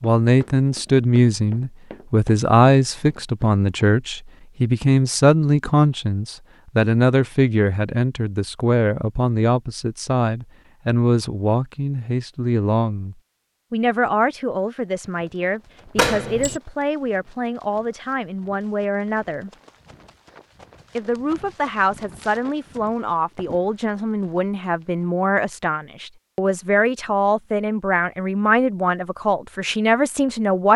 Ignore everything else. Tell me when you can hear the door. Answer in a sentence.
You can hear the door from 15.9 to 16.6 s.